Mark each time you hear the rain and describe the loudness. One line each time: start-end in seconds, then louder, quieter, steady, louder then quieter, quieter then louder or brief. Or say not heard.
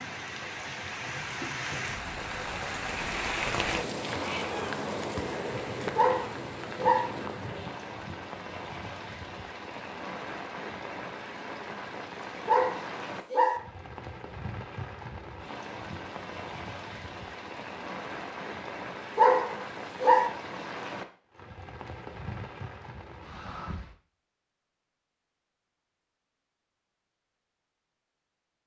0.0-23.9 quieter.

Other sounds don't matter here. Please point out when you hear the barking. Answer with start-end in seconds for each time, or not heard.
6.0-7.0, 12.4-13.6, 19.1-20.3.